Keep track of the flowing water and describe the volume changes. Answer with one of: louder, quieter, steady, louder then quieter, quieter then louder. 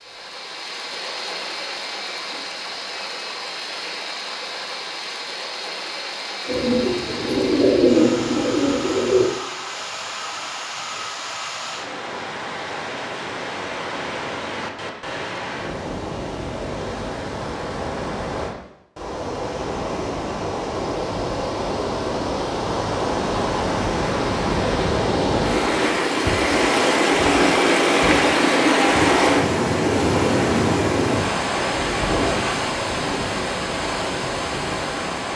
louder.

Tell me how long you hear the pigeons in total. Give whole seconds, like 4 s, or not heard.
3 s.